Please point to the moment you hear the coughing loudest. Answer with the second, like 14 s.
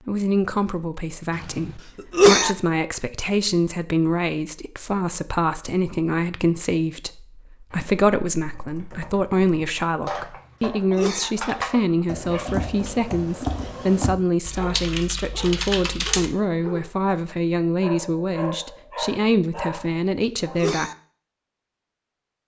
2 s.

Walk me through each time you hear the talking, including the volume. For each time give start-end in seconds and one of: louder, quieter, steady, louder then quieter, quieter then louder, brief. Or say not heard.
0.1-20.9 steady.